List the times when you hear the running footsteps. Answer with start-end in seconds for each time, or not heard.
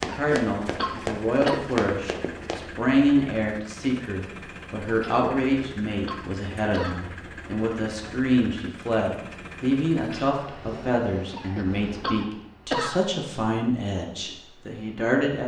0.0-2.7.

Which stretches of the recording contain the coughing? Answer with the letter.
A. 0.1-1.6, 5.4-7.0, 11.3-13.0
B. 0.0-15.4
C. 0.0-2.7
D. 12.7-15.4
A.